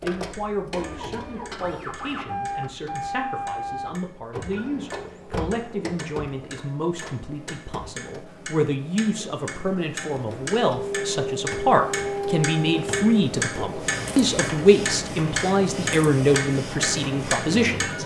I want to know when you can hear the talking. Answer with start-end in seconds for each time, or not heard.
0.0-18.0.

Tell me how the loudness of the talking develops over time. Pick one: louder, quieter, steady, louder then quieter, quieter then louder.
louder.